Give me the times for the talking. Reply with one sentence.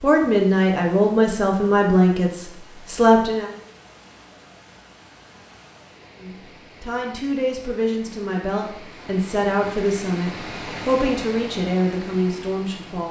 The talking can be heard from 0.0 to 3.5 s and from 6.2 to 13.0 s.